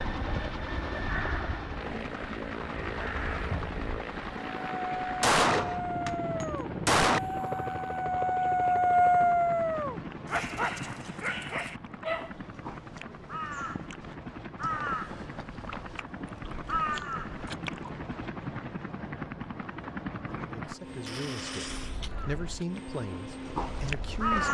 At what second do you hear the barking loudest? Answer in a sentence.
The volume of the barking peaks at 9 seconds.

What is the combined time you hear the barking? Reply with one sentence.
You can hear the barking for 8 seconds altogether.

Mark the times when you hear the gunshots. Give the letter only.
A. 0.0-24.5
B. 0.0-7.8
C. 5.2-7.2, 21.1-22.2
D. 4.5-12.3
C.